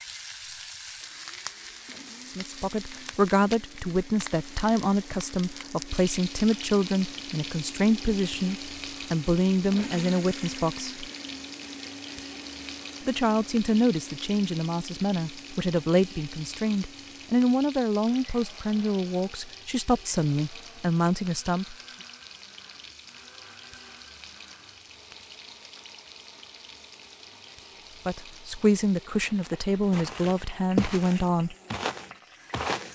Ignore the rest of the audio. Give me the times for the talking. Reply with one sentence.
The talking can be heard from 2.2 to 11.0 s, from 13.1 to 21.8 s and from 28.1 to 31.6 s.